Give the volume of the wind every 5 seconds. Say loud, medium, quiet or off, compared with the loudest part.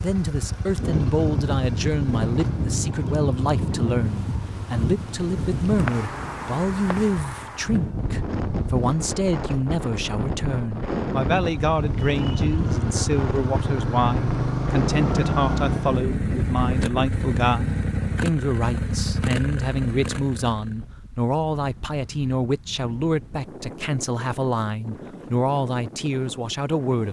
loud, loud, loud, loud, quiet, medium.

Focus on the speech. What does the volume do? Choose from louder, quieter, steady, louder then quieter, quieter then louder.
steady.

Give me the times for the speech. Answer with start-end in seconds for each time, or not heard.
0.0-27.0.